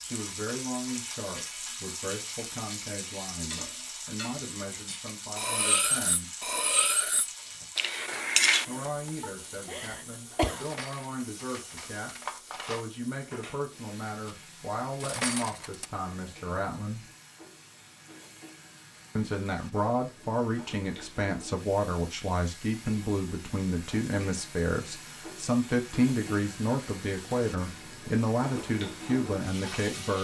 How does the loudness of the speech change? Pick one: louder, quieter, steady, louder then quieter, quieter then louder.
louder.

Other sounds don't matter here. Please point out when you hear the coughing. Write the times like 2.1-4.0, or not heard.
9.2-10.7.